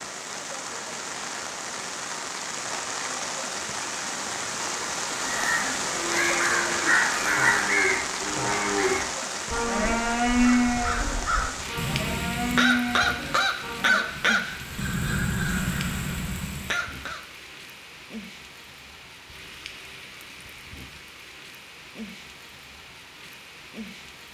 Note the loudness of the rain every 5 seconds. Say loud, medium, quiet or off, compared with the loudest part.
loud, loud, medium, quiet, quiet.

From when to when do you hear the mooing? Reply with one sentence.
The mooing can be heard from 5.8 to 14.1 s.